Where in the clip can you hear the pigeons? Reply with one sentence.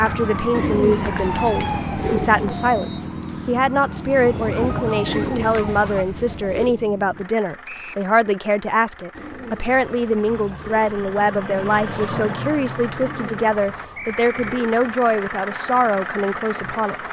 The pigeons can be heard from 0.5 to 2.5 s, from 5.0 to 6.8 s, from 9.1 to 10.9 s and from 12.9 to 14.9 s.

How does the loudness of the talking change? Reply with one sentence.
The volume of the talking stays about the same.